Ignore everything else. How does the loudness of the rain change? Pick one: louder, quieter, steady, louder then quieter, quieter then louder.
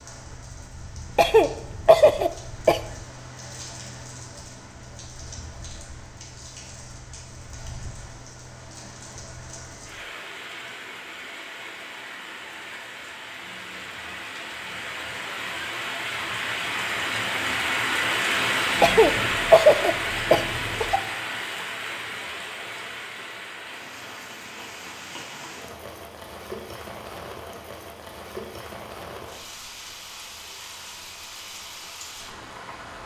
louder then quieter.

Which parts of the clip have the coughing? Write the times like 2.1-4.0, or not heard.
1.1-3.0, 18.8-21.0.